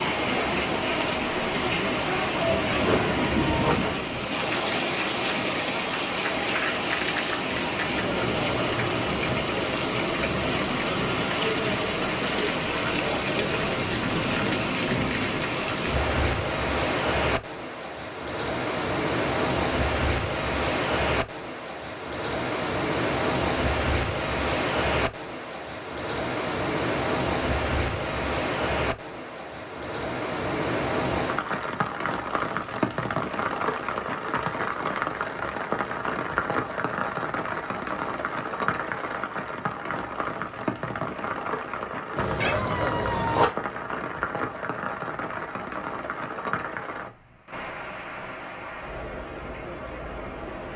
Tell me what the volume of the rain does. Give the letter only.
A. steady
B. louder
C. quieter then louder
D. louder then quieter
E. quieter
E.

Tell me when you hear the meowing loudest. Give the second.
43 s.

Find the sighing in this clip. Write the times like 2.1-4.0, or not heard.
not heard.